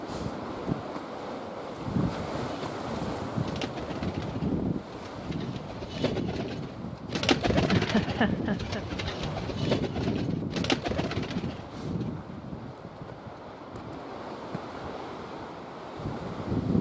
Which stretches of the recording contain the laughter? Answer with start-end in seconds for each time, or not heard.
7.7-8.8.